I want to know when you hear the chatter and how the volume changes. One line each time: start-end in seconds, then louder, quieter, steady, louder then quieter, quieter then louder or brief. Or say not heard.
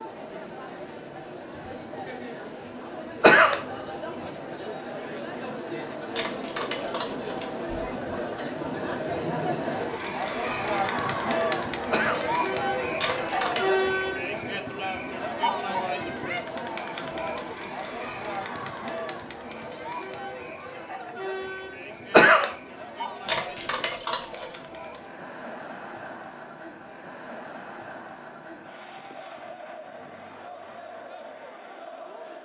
0.0-32.4 louder then quieter.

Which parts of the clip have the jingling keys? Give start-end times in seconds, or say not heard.
6.1-7.5, 12.9-13.8, 23.2-24.6.